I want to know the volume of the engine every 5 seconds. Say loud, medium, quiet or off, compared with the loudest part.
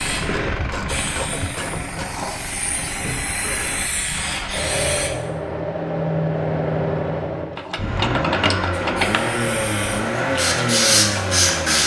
medium, loud, loud.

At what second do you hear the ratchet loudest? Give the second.
8 s.